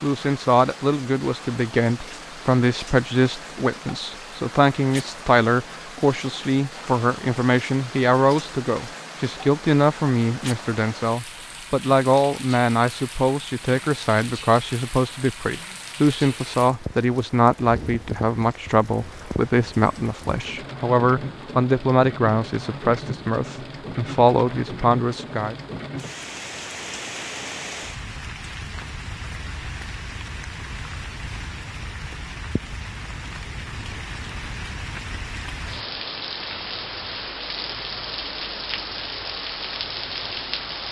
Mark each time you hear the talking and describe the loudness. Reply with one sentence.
The talking can be heard from 0.0 to 25.6 s, at a steady volume.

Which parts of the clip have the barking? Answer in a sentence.
The barking can't be heard in this clip.